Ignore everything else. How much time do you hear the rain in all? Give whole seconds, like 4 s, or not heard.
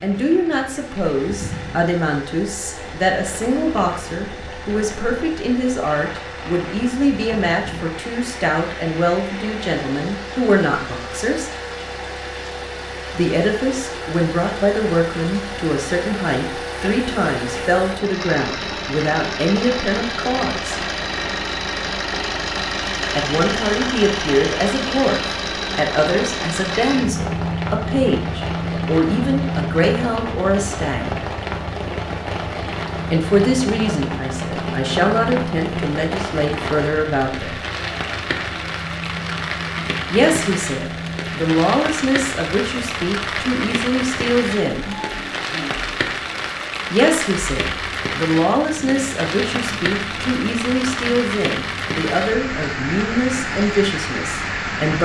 55 s.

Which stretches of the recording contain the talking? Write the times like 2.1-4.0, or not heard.
0.0-11.5, 13.2-20.8, 23.1-31.2, 33.1-37.6, 40.1-44.9, 46.9-55.0.